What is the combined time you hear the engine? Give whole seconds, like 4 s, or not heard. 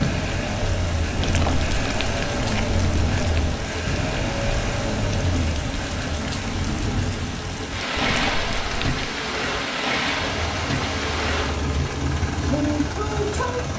10 s.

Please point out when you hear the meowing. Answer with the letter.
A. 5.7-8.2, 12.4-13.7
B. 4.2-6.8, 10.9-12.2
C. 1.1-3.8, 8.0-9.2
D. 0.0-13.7
C.